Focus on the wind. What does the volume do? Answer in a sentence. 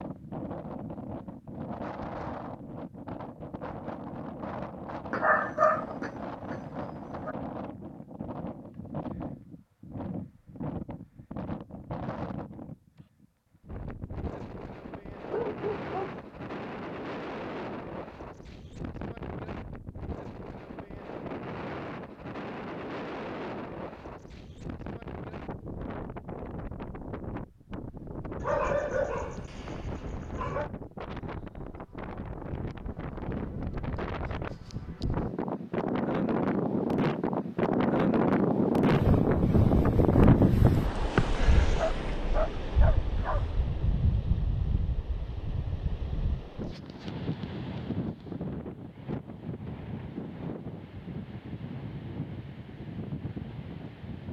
The volume of the wind goes up, then down.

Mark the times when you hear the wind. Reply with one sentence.
The wind can be heard from 0.0 to 54.2 s.